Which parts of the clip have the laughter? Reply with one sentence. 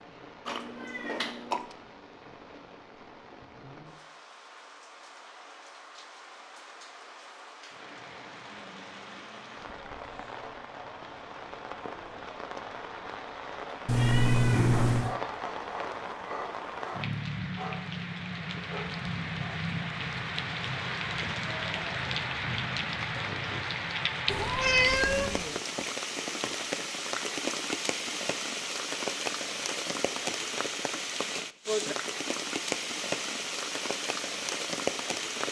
You can't hear the laughter here.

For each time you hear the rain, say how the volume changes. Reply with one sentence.
You can hear the rain from 0.0 to 35.4 s, getting louder.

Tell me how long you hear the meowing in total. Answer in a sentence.
You can hear the meowing for 4 seconds altogether.